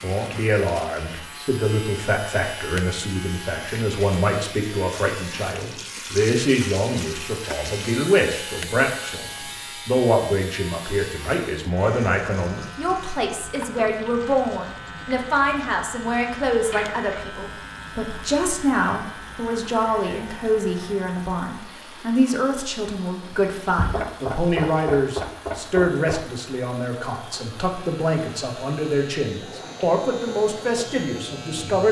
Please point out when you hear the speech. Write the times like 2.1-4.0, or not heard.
0.0-31.8.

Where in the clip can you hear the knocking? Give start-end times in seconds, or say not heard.
23.8-26.2.